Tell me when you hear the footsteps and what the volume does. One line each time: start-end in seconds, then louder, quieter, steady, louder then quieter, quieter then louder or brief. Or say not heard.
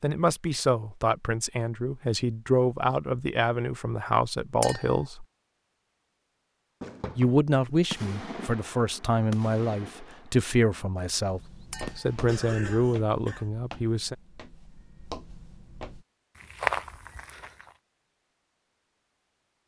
11.2-17.7 quieter then louder.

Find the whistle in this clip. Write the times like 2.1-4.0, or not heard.
not heard.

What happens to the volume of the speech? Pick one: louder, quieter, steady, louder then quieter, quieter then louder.
steady.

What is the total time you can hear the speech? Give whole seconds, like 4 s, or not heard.
12 s.